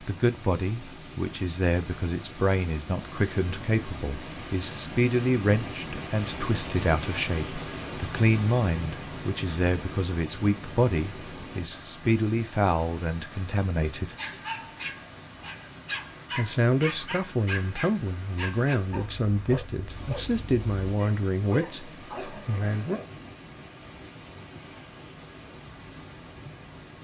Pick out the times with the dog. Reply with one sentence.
You can hear the dog from 14.2 to 23.1 s.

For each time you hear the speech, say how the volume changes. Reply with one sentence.
The speech can be heard from 0.0 to 14.2 s, at a steady volume; and from 16.4 to 23.0 s, at a steady volume.